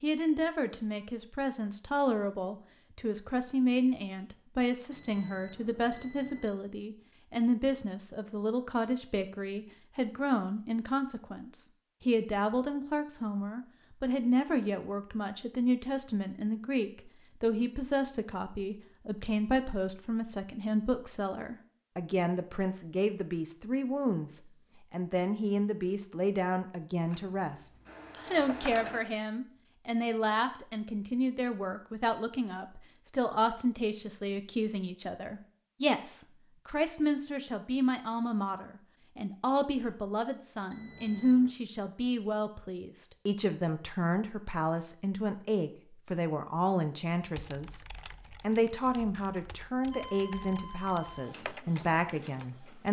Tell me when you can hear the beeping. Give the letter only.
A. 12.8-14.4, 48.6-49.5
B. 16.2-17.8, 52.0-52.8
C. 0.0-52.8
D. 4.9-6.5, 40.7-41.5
D.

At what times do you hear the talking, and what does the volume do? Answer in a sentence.
You can hear the talking from 0.0 to 52.8 s, at a steady volume.